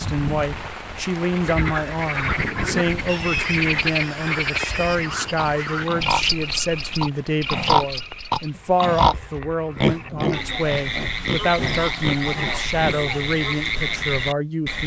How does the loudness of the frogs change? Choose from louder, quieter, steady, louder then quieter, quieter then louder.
quieter then louder.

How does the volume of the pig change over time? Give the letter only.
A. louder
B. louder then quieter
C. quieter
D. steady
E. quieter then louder
B.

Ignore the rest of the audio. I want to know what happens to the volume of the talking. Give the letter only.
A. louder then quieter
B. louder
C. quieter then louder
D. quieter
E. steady
E.